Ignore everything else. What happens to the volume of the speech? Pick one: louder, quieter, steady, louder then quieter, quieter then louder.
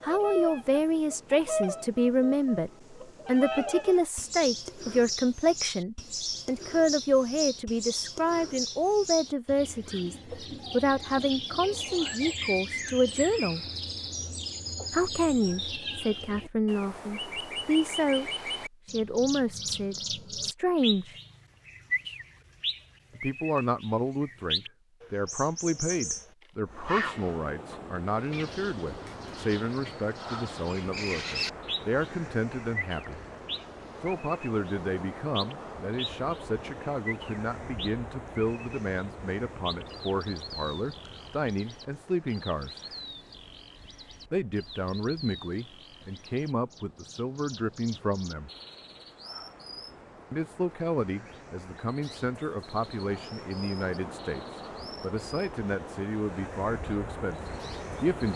quieter.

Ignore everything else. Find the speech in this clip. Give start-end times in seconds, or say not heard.
0.0-13.7, 14.9-21.2, 23.1-33.2, 34.0-42.9, 44.3-48.5, 50.3-58.3.